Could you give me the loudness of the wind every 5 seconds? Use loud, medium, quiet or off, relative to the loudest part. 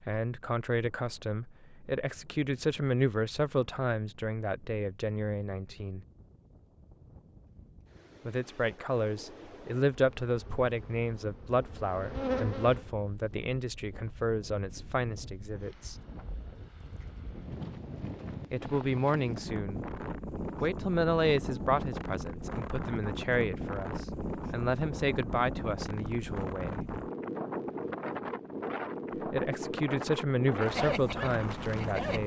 quiet, quiet, quiet, medium, loud, loud, loud.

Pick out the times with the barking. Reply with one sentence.
The barking can be heard from 30.6 to 32.2 s.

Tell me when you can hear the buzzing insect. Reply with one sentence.
The buzzing insect can be heard from 9.9 to 12.8 s.